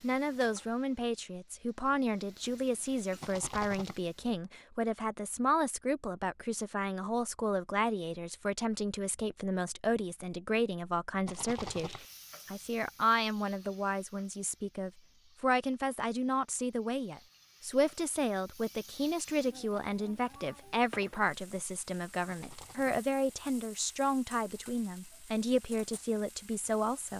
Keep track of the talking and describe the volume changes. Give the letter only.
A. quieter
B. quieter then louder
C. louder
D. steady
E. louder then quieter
D.